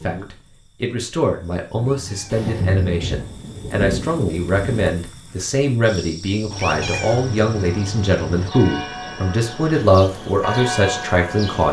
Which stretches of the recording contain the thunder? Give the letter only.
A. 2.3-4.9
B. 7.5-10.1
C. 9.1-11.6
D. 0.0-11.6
A.